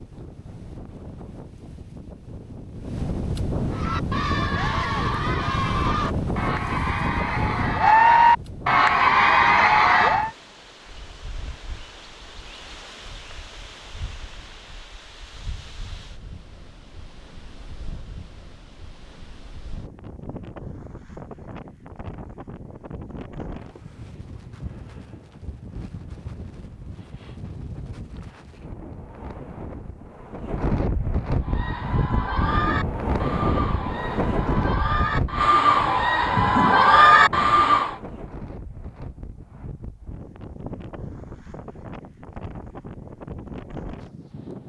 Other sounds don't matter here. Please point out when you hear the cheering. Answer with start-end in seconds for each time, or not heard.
3.7-10.3, 31.4-38.0.